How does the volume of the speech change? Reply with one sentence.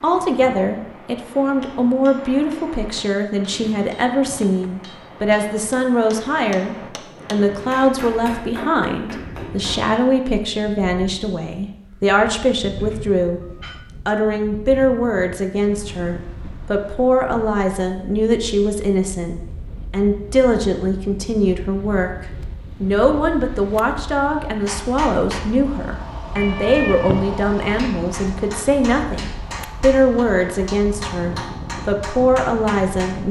The volume of the speech stays about the same.